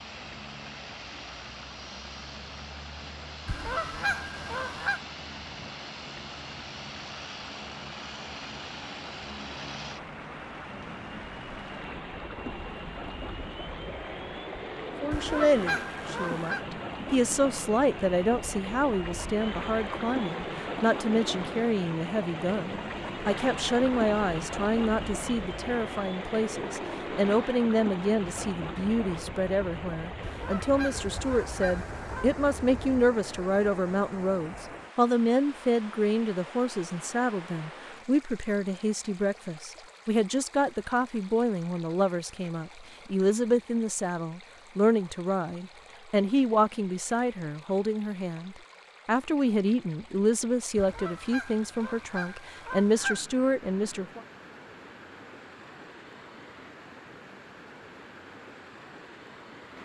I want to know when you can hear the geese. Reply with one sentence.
The geese can be heard from 3.5 to 5.0 s, from 15.1 to 16.6 s, from 30.2 to 32.3 s and from 50.8 to 53.2 s.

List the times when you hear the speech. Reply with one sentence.
You can hear the speech from 15.0 to 54.2 s.